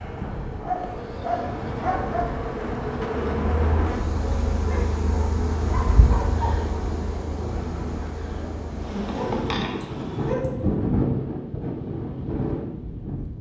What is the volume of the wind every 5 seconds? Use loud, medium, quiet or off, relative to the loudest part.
medium, medium, loud.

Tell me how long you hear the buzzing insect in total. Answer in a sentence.
The buzzing insect can be heard for 10 seconds in total.